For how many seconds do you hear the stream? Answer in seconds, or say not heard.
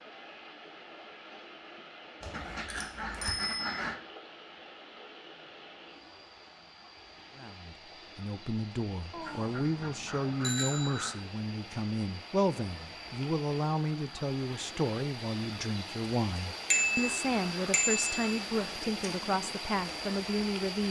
21 s.